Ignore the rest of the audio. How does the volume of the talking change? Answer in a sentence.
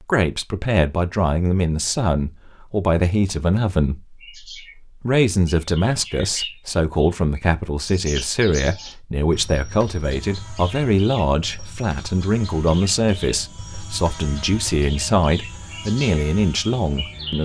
The loudness of the talking stays about the same.